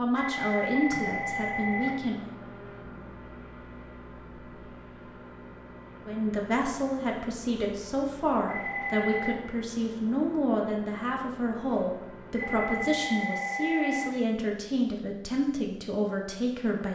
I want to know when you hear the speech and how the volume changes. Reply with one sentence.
You can hear the speech briefly from 0.0 to 2.3 s; and from 6.0 to 16.8 s, at a steady volume.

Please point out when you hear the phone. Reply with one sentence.
The phone can be heard from 0.1 to 1.9 s, from 8.4 to 9.3 s and from 12.3 to 14.1 s.